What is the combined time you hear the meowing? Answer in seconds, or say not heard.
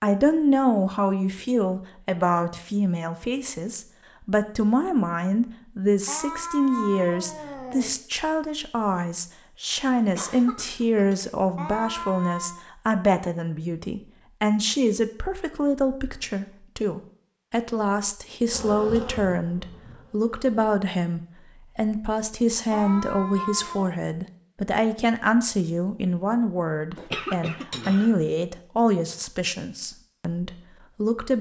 4 s.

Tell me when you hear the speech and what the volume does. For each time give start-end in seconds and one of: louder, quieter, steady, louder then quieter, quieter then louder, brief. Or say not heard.
0.0-31.3 steady.